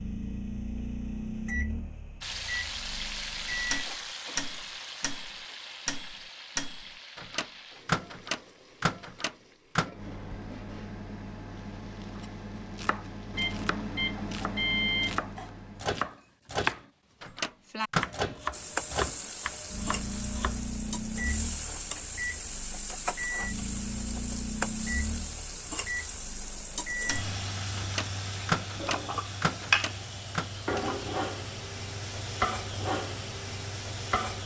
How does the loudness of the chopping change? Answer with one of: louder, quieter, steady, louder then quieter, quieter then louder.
louder then quieter.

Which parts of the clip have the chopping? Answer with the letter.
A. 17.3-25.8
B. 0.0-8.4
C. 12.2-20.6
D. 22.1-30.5
C.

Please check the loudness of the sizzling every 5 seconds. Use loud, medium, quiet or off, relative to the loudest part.
loud, quiet, quiet, loud, loud, loud, loud.